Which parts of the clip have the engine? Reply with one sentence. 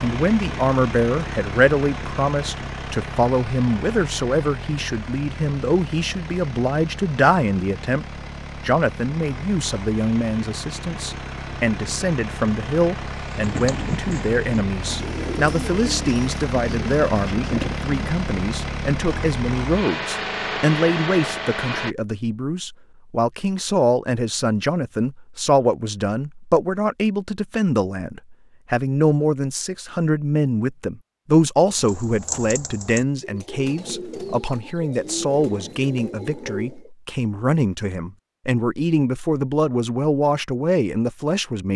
The engine can be heard from 0.0 to 21.9 s.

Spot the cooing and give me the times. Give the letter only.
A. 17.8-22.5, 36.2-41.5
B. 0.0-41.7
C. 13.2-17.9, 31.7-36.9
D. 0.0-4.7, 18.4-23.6
C.